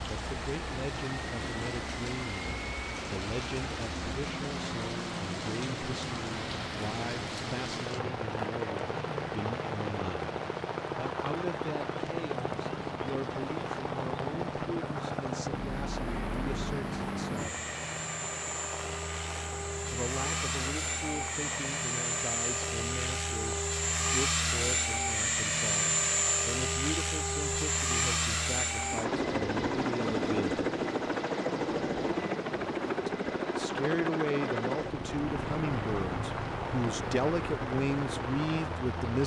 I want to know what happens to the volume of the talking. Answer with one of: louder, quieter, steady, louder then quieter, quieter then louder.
louder.